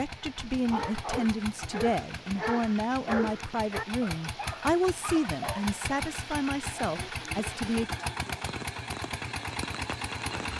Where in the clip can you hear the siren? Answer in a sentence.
You can't hear the siren here.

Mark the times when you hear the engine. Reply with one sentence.
The engine can be heard from 0.0 to 10.5 s.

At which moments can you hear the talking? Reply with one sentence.
You can hear the talking from 0.0 to 7.8 s.